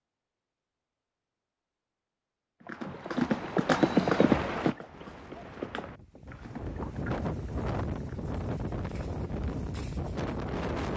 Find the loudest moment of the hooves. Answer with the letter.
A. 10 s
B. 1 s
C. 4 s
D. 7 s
C.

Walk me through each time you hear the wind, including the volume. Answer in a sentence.
You can hear the wind from 4.9 to 10.9 s, getting louder.